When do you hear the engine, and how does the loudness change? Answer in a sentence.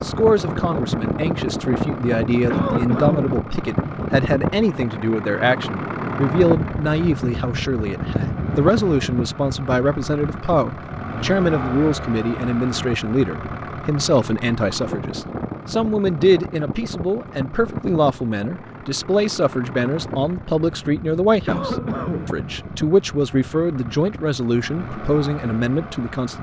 You can hear the engine from 0.0 to 26.3 s, getting quieter.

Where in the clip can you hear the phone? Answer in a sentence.
The phone can't be heard in this clip.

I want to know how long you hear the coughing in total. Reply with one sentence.
You can hear the coughing for 2 seconds altogether.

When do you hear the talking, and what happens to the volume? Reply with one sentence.
The talking can be heard from 0.0 to 26.3 s, at a steady volume.